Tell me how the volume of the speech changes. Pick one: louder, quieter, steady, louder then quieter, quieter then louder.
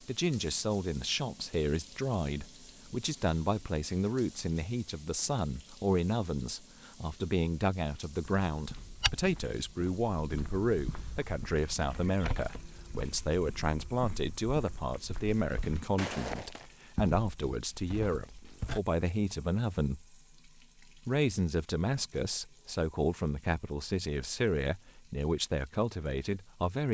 steady.